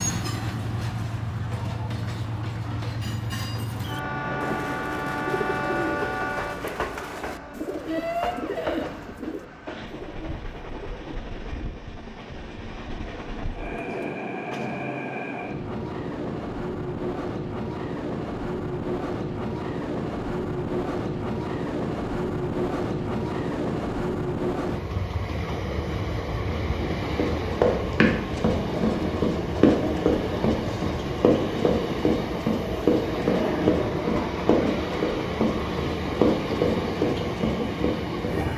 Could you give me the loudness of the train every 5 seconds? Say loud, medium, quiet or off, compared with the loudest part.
loud, loud, medium, loud, loud, loud, loud, loud.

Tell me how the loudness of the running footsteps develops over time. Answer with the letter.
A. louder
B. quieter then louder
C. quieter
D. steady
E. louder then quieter
D.